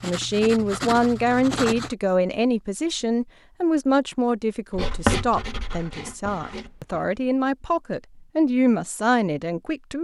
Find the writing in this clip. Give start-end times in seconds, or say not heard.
0.0-1.9, 4.7-7.2.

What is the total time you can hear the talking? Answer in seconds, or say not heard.
10 s.